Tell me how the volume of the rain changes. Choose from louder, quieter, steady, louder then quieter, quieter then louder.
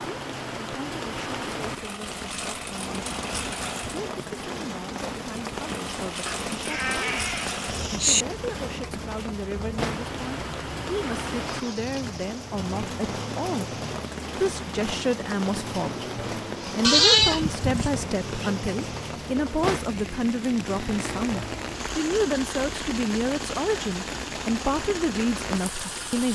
steady.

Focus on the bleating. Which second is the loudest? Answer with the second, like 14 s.
17 s.